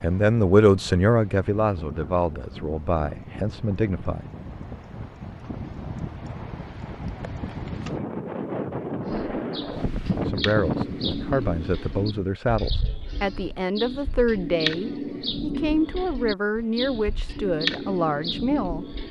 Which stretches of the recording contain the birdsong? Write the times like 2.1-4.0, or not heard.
9.1-19.0.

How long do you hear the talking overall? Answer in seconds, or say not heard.
13 s.